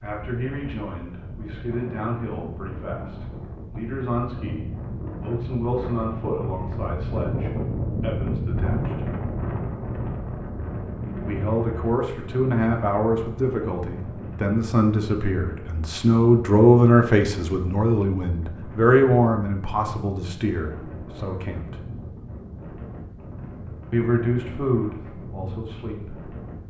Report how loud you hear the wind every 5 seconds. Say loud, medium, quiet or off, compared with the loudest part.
medium, loud, medium, medium, medium, medium.